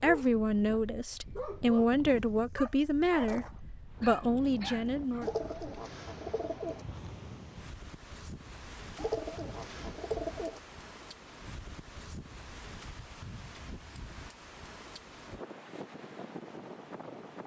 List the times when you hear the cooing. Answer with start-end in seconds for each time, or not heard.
5.2-6.8, 8.9-10.6.